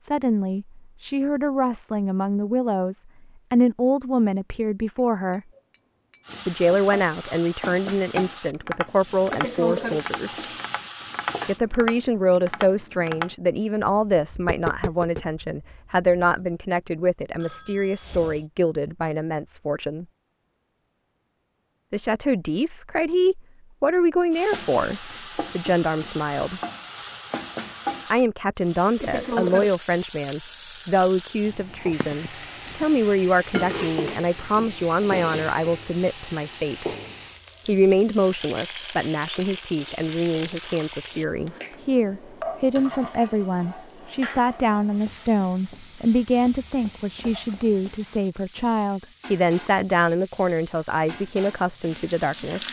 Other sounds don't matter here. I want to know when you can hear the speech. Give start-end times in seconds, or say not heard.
0.0-5.4, 6.5-10.5, 11.4-20.1, 21.9-26.6, 28.1-36.9, 37.6-52.6.